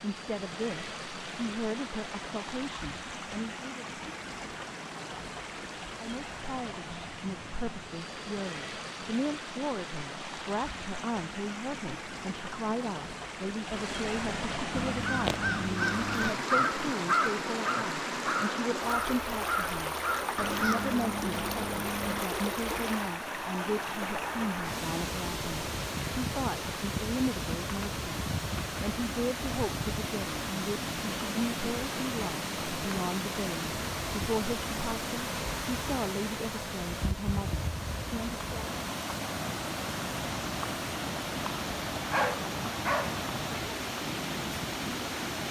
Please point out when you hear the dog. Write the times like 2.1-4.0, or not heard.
42.1-43.2.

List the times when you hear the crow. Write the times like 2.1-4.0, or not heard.
14.7-22.2.